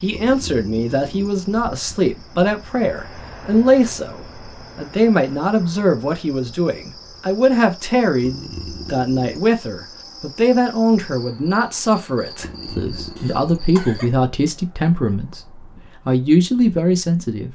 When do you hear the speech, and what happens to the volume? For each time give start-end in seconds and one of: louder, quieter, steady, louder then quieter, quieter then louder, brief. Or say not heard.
0.0-17.5 steady.